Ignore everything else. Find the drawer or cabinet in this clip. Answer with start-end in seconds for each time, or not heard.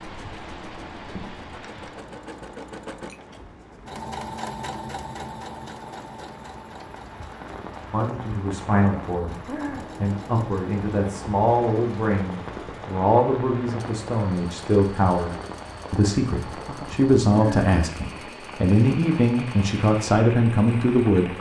not heard.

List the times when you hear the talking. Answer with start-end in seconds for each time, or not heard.
7.9-21.3.